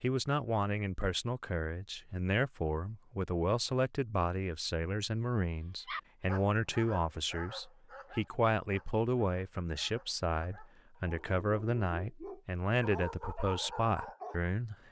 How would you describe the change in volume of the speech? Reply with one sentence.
The volume of the speech stays about the same.